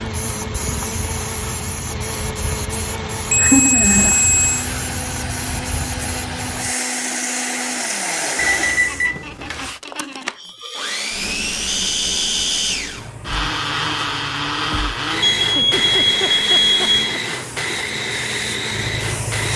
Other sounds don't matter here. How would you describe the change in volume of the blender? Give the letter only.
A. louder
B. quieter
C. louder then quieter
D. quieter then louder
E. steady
A.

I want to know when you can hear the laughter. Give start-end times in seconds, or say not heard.
3.2-4.2, 8.8-10.3, 15.6-17.2.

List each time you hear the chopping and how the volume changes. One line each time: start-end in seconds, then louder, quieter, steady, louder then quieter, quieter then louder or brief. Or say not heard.
not heard.